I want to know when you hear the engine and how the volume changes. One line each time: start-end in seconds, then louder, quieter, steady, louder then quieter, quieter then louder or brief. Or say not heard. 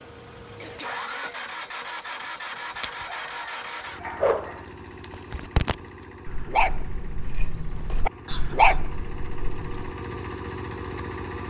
0.0-11.4 quieter then louder.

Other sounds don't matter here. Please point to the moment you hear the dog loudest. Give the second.
9 s.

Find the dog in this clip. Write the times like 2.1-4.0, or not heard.
2.8-9.9.